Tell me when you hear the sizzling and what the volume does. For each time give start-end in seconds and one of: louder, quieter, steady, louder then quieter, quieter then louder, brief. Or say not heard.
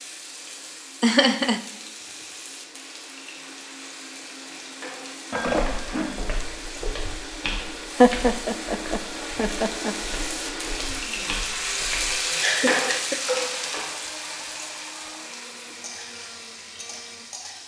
0.0-17.6 louder then quieter.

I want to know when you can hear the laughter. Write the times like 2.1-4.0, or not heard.
1.0-1.6, 8.0-9.9, 12.4-13.4.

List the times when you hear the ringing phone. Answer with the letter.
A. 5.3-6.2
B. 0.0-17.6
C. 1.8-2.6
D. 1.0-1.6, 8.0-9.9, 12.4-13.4
A.